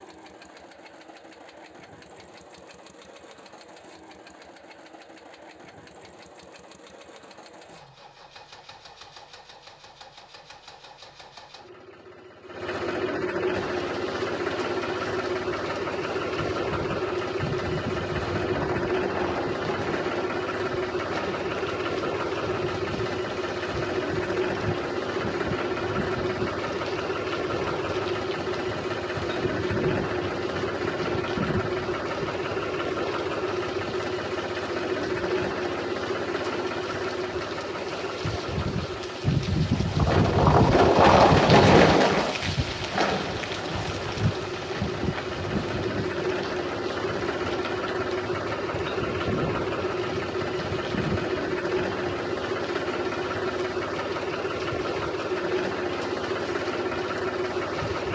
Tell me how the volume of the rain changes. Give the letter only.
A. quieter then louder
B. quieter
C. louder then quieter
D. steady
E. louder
C.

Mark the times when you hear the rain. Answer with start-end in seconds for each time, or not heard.
13.5-58.1.